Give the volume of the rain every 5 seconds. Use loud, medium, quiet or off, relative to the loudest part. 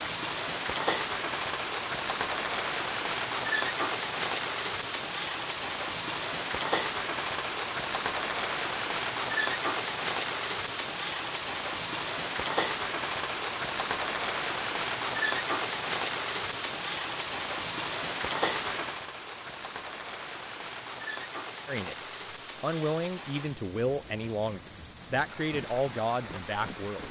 loud, loud, loud, loud, medium, medium.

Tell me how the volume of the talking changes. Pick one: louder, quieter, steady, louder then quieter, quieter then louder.
steady.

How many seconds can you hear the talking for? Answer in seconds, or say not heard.
5 s.